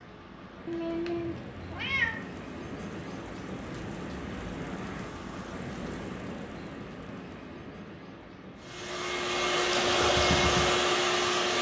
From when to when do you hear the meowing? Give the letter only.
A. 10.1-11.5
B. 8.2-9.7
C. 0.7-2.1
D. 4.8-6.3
C.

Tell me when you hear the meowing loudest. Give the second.
2 s.